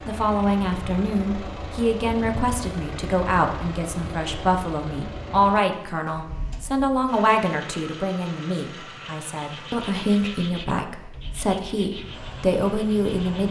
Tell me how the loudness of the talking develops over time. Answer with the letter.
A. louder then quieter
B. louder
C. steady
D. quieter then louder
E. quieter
C.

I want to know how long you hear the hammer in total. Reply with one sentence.
The hammer can't be heard in this clip.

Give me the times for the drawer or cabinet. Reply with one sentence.
The drawer or cabinet can't be heard in this clip.